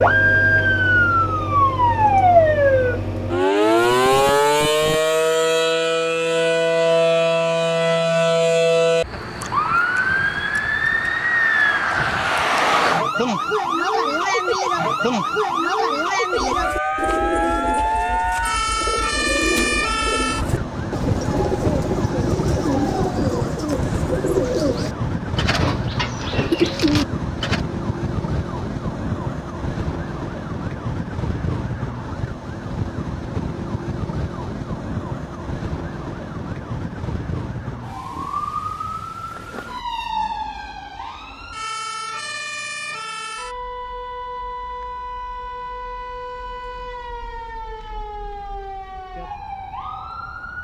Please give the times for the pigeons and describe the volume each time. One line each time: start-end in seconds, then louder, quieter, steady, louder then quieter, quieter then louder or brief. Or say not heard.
16.3-27.6 louder.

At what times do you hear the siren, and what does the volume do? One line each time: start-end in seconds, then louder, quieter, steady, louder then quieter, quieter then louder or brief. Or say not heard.
0.0-50.5 quieter.